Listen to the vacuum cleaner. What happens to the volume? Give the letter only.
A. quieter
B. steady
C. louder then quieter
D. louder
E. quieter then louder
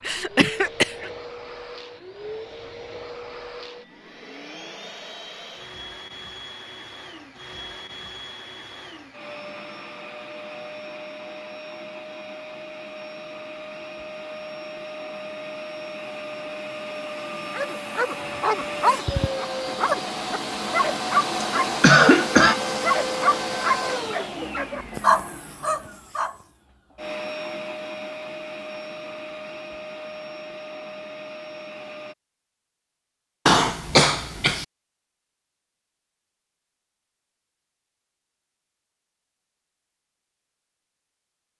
C.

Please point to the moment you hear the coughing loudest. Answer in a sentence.
The volume of the coughing peaks at 22 seconds.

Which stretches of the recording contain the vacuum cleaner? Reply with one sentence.
The vacuum cleaner can be heard from 0.0 to 32.1 s.